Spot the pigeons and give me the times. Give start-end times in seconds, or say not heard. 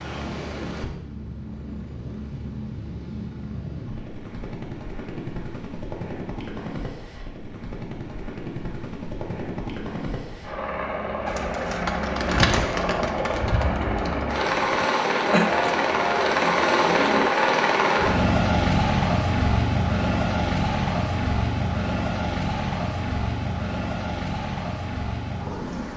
11.2-17.2.